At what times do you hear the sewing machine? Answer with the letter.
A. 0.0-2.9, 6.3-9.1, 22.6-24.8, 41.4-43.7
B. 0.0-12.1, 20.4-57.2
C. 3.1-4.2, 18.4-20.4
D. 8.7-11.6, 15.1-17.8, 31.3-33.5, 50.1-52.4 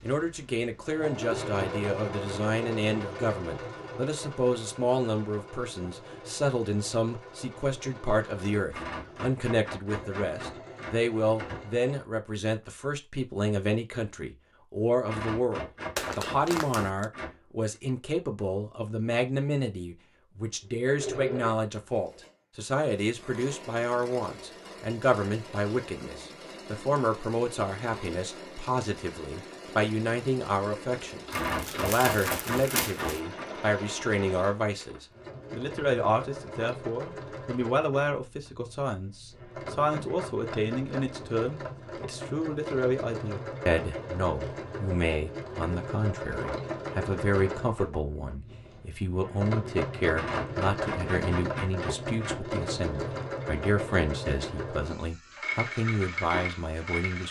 B.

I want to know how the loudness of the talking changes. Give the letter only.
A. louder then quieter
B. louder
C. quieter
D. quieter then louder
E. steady
E.